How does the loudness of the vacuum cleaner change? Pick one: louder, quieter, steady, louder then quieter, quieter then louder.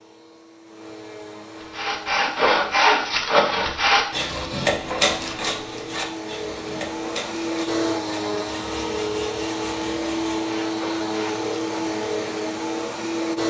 louder.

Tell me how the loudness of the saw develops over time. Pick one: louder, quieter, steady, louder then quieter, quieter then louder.
quieter.